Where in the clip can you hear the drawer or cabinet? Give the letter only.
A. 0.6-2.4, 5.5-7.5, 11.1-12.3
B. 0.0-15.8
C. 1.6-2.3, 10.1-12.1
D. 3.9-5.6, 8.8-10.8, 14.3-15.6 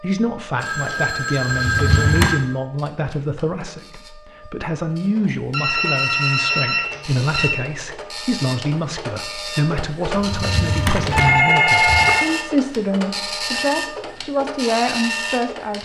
C.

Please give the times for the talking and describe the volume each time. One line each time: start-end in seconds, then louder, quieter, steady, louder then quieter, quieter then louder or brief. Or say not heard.
0.0-15.8 steady.